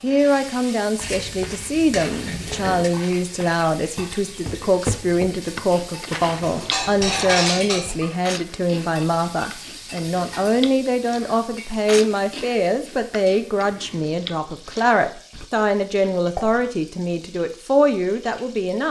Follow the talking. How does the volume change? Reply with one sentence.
The volume of the talking stays about the same.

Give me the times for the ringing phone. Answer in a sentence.
You can't hear the ringing phone here.